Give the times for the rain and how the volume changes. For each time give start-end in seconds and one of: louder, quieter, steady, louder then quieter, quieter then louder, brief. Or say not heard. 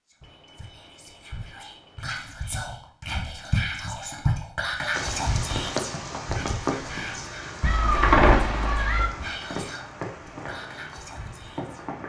4.9-12.0 quieter.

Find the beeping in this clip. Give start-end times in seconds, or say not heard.
0.2-2.1.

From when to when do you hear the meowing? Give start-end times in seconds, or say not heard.
7.6-9.1.